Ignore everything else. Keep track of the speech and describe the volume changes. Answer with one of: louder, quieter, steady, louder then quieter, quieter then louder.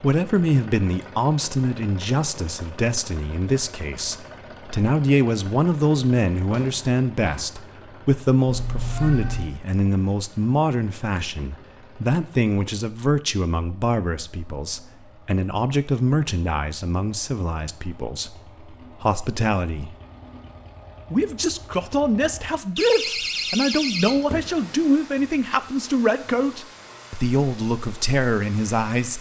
steady.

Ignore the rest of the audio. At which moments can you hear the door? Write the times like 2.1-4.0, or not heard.
6.5-7.5, 22.8-24.5.